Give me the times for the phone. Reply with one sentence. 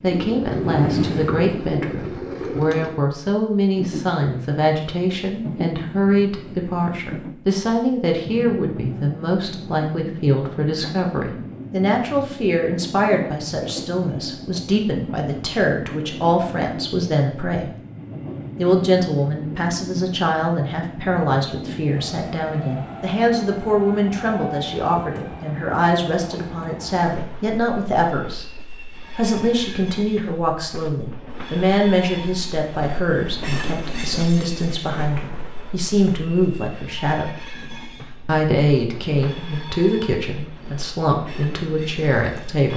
You can't hear the phone here.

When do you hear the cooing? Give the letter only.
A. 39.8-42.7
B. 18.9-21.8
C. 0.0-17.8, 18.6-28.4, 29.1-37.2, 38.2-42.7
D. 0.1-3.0
D.